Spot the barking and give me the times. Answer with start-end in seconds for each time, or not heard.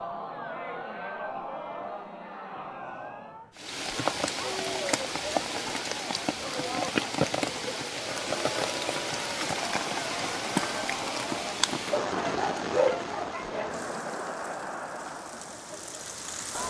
11.9-13.8.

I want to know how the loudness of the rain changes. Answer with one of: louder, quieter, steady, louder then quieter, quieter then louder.
quieter.